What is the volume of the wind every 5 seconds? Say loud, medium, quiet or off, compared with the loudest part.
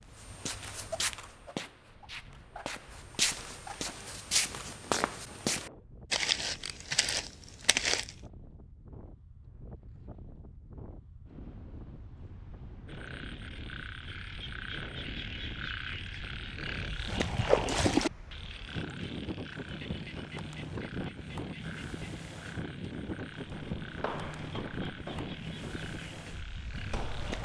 quiet, quiet, medium, loud, loud, loud.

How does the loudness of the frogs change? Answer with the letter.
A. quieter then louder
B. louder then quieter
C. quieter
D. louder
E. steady
B.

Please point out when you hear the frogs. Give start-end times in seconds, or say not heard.
12.8-27.3.